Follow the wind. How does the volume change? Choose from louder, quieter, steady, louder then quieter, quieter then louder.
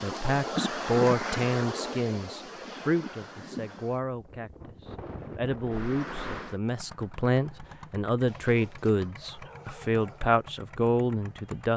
quieter then louder.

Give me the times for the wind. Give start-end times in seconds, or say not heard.
0.0-6.5.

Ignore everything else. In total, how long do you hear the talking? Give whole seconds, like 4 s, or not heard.
12 s.